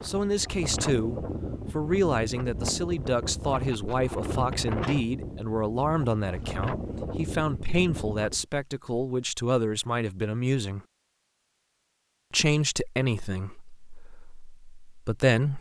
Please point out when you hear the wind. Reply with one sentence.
You can hear the wind from 0.0 to 8.4 s.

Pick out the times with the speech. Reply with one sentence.
The speech can be heard from 0.0 to 10.8 s and from 12.3 to 15.5 s.